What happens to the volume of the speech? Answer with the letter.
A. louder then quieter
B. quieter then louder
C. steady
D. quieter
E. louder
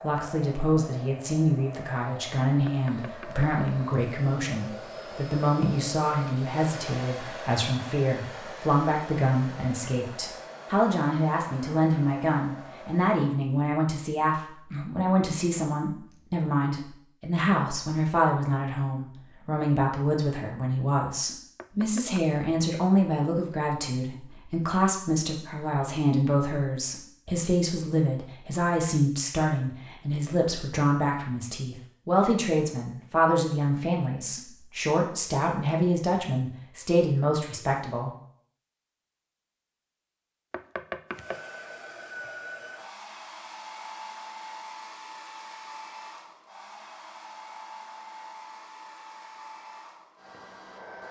C.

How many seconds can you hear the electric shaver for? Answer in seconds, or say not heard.
not heard.